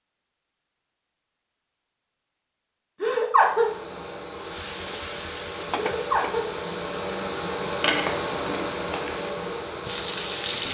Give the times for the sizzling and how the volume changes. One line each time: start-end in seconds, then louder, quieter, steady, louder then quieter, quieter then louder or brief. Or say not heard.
4.3-10.6 quieter then louder.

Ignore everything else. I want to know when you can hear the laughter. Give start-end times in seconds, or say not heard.
3.0-3.7, 5.8-6.5.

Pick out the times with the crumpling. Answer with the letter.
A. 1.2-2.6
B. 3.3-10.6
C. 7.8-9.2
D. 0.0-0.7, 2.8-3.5
C.